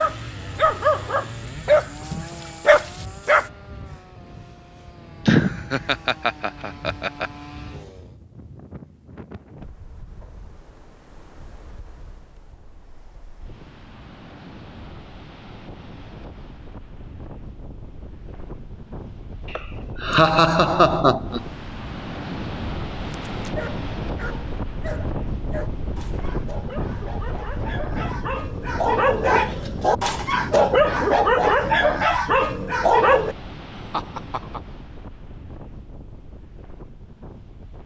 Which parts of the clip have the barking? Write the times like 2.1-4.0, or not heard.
0.0-3.5, 23.2-33.4.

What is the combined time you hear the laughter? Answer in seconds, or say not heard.
5 s.